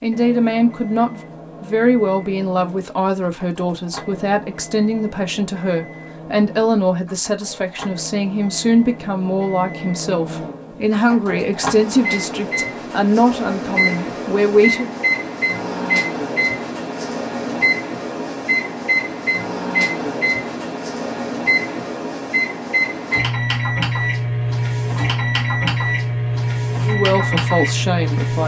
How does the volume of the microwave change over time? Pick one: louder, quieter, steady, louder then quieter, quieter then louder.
louder.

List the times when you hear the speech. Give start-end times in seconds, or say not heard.
0.0-14.9, 26.9-28.4.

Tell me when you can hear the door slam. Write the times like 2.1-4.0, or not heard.
not heard.